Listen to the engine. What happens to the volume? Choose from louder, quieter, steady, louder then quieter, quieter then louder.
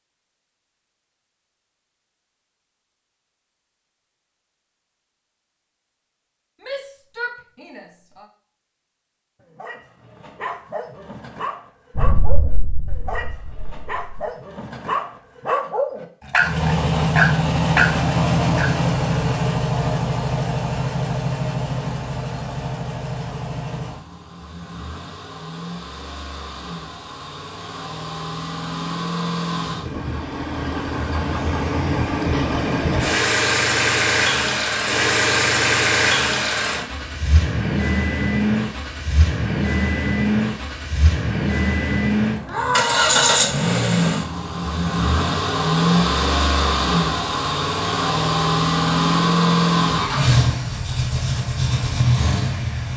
quieter then louder.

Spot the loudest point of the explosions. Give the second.
12 s.